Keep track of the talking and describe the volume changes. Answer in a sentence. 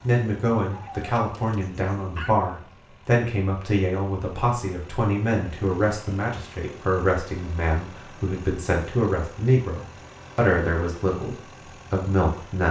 The volume of the talking stays about the same.